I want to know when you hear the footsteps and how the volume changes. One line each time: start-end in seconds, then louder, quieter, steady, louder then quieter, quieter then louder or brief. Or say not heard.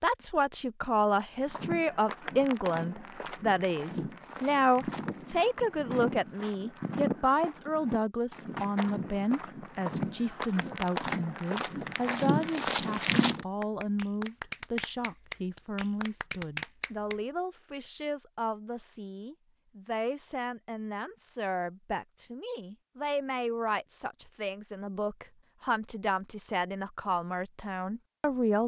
1.4-13.4 louder.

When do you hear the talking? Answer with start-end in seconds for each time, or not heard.
0.0-28.6.